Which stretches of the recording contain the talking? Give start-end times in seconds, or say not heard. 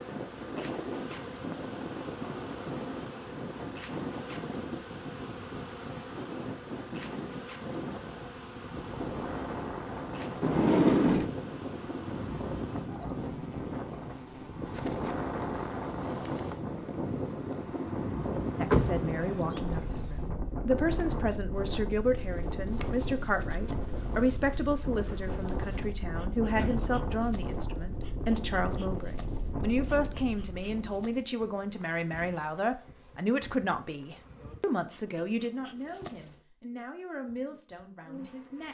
18.6-38.6.